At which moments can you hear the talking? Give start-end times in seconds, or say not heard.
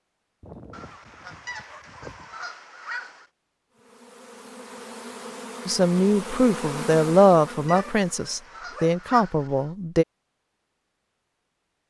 5.7-10.1.